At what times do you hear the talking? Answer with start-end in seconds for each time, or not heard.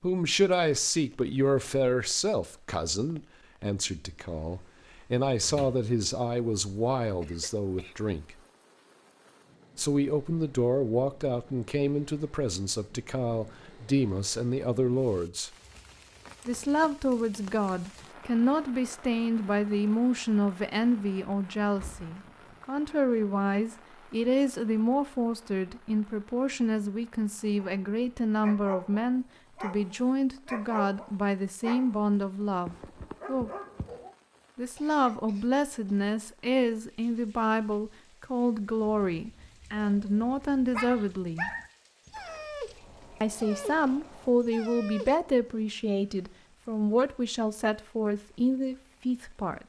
0.0-8.3, 9.8-15.5, 16.4-33.5, 34.5-41.5, 43.2-49.6.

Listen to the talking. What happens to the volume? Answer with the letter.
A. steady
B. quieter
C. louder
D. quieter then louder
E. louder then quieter
A.